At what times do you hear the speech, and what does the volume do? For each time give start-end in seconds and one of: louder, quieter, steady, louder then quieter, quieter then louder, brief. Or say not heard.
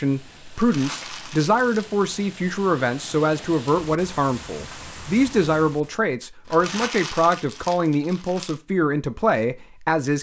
0.0-10.1 steady.